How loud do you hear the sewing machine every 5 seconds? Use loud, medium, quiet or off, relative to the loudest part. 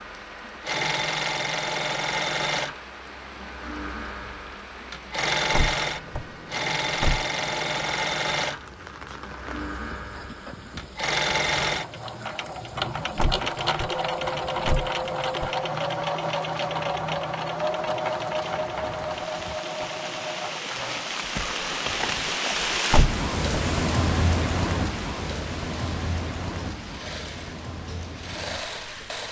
loud, loud, loud, loud, medium, medium.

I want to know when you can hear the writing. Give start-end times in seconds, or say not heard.
not heard.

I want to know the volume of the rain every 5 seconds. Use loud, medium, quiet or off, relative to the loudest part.
quiet, quiet, quiet, quiet, loud, medium.